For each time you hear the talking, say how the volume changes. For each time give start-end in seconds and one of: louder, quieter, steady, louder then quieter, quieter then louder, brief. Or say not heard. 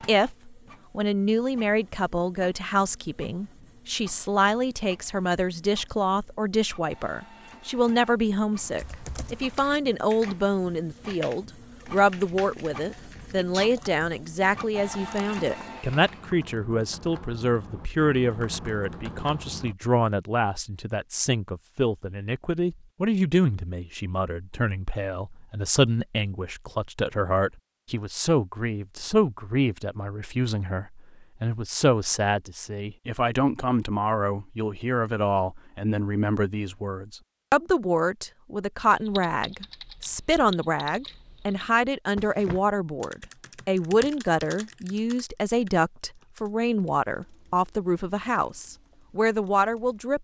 0.1-50.1 steady.